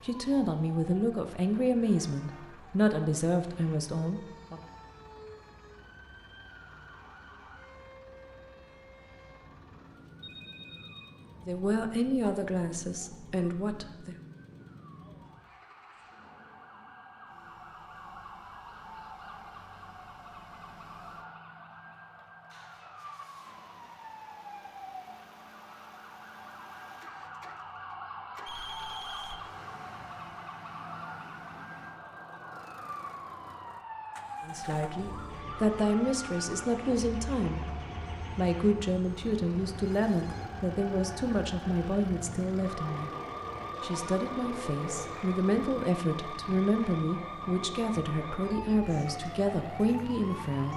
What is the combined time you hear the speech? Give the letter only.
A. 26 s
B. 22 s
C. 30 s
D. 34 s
B.